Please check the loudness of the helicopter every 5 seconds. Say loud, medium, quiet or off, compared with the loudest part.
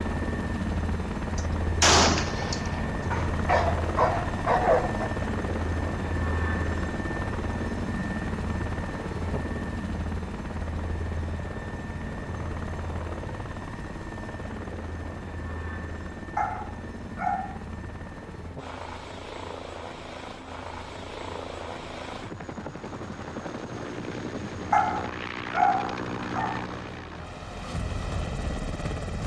loud, loud, medium, medium, medium, loud.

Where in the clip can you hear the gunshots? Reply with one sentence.
You can hear the gunshots from 1.4 to 2.9 s.